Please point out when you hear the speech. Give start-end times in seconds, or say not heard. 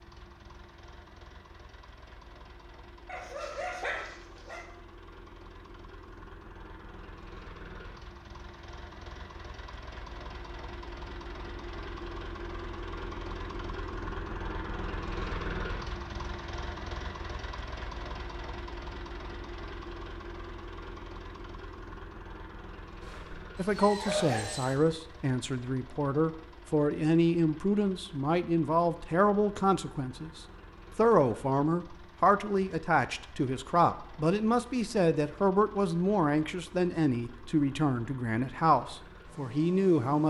23.6-40.2.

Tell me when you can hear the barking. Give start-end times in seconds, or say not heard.
3.0-4.7, 23.0-24.8.